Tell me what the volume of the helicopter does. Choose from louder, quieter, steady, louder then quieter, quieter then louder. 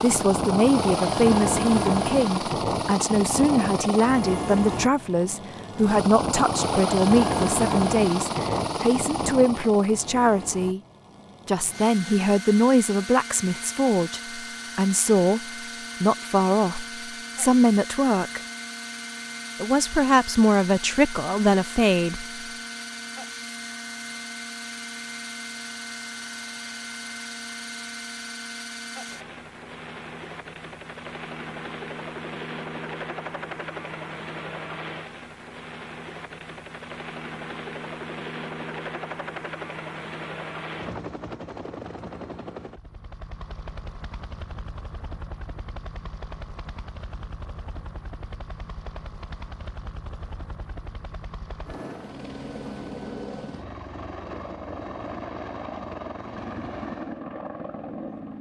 quieter.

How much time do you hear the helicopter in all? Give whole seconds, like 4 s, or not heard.
58 s.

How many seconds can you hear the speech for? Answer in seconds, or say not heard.
20 s.